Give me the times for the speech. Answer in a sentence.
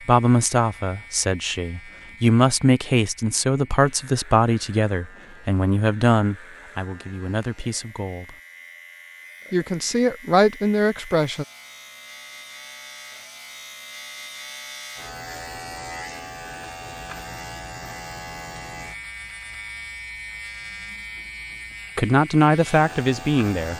You can hear the speech from 0.1 to 8.3 s, from 9.5 to 11.4 s and from 21.9 to 23.7 s.